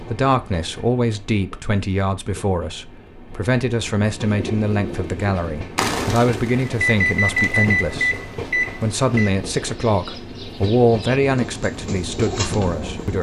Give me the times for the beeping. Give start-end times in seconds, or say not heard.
6.7-9.3.